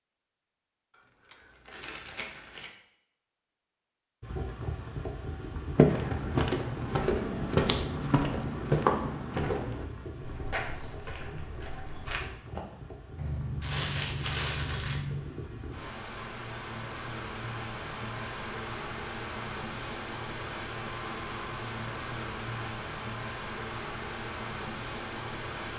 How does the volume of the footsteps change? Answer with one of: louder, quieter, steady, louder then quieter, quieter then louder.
quieter.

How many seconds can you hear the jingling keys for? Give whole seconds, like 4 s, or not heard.
3 s.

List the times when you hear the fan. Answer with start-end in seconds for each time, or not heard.
4.2-25.7.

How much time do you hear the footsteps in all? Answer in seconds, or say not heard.
7 s.